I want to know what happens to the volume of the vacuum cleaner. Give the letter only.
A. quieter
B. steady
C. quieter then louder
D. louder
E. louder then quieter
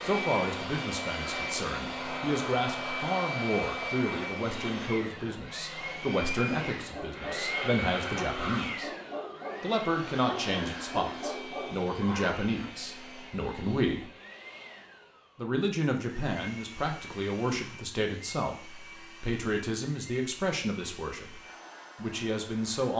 A.